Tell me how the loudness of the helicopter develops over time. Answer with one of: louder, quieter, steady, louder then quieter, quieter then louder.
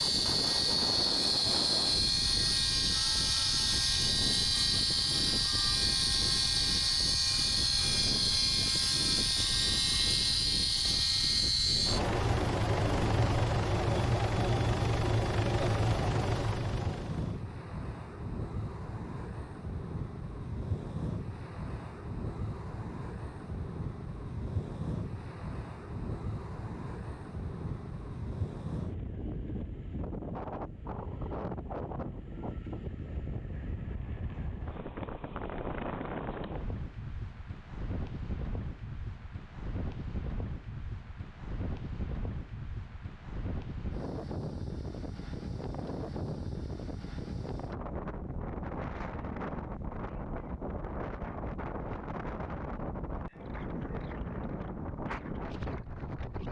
steady.